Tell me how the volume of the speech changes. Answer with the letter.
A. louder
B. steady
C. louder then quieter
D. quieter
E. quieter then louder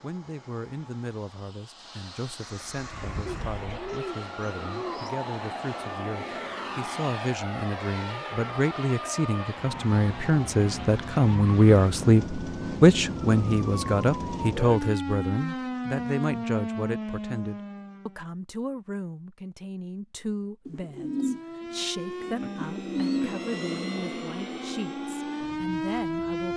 C.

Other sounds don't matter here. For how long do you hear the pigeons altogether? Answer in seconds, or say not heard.
5 s.